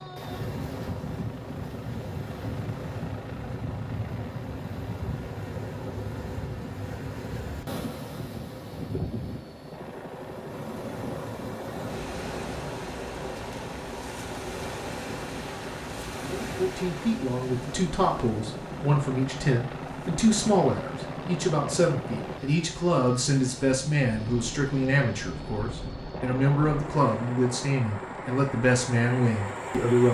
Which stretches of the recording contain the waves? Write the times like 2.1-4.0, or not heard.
0.0-30.0.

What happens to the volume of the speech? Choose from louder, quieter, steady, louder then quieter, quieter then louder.
steady.